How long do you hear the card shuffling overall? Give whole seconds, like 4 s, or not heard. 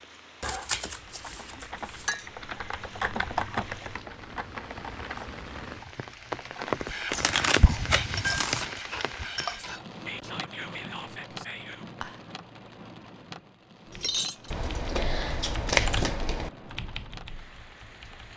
5 s.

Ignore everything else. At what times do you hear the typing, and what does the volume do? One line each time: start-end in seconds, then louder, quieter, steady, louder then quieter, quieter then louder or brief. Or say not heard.
0.9-7.1 louder then quieter
13.8-18.3 louder then quieter.